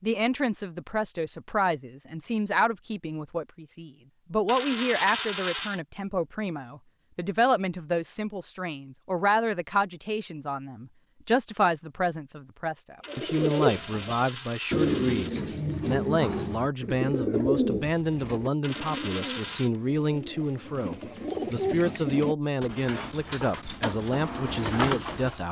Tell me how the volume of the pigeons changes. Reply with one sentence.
The loudness of the pigeons goes down, then up.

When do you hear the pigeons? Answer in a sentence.
The pigeons can be heard from 13.1 to 25.4 s.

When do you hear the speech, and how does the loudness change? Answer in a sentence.
The speech can be heard from 0.0 to 25.4 s, at a steady volume.